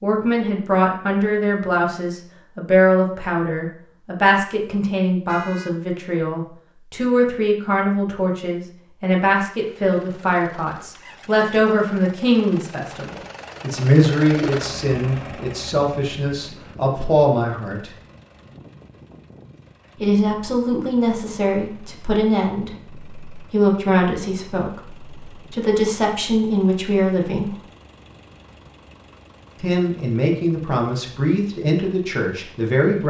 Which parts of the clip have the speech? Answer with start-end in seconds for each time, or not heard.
0.0-17.9, 20.0-27.6, 29.6-33.0.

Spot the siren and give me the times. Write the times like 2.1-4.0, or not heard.
not heard.